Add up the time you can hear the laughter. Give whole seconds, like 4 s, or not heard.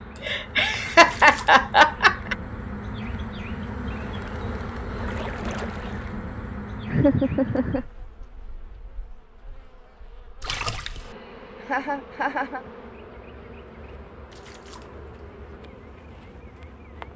4 s.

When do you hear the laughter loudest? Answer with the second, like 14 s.
1 s.